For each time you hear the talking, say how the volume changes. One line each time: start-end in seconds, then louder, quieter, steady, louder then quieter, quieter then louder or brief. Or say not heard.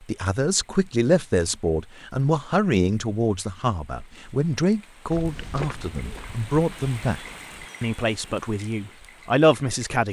0.0-10.0 steady.